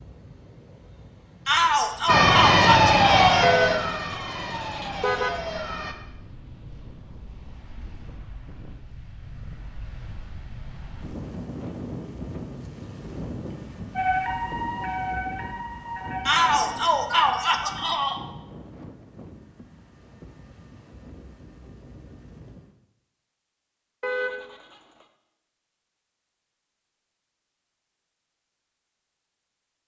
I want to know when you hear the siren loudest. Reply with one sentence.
The loudest moment of the siren is at 3 seconds.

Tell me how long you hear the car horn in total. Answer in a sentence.
The car horn can be heard for 3 seconds in total.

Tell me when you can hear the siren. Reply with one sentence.
The siren can be heard from 2.0 to 6.0 s and from 13.9 to 18.0 s.